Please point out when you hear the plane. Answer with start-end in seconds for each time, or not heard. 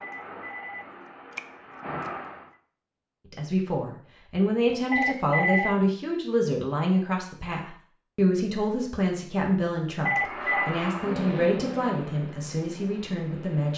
0.0-2.5, 10.1-13.7.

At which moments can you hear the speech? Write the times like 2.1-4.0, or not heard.
3.3-13.7.